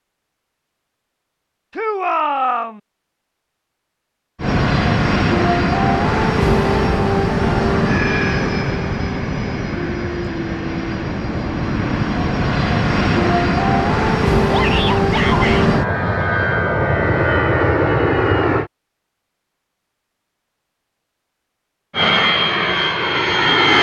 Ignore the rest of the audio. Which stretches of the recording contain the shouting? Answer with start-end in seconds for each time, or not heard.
1.8-2.8, 14.5-15.7.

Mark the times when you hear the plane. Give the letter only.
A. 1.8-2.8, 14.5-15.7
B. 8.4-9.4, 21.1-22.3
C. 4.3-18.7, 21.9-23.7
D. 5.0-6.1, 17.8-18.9
C.